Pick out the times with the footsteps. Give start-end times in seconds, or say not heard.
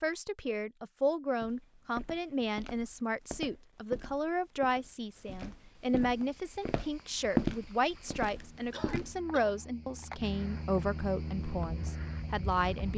1.4-9.2.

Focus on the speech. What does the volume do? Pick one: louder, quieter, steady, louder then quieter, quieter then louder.
steady.